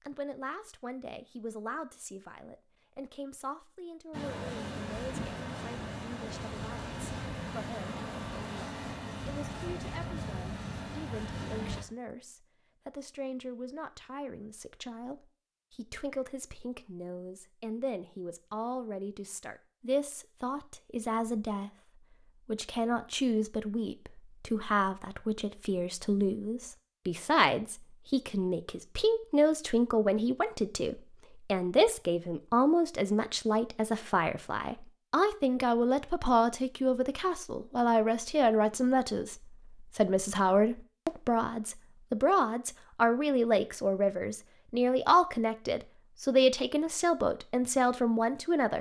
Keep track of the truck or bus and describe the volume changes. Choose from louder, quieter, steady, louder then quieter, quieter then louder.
steady.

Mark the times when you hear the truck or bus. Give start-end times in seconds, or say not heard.
4.1-11.8.